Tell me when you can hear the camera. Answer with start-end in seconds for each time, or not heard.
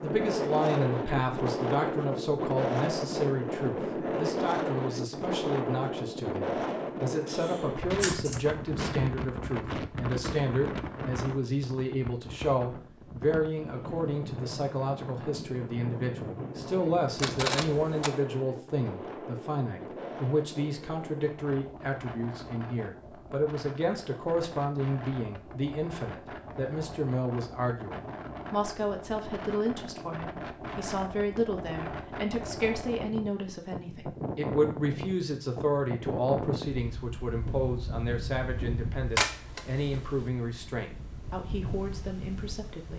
7.4-8.4, 17.1-18.1, 39.1-40.3.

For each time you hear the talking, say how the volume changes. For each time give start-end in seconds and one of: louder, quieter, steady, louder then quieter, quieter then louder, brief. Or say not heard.
0.0-42.9 steady.